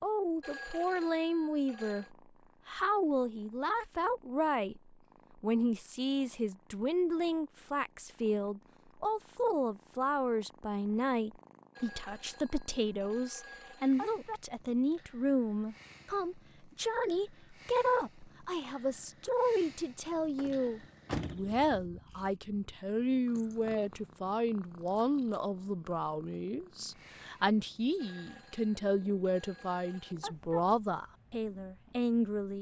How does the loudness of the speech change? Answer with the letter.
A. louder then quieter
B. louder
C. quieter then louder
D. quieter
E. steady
E.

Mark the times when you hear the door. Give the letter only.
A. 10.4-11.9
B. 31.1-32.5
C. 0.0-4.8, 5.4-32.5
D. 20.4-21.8
D.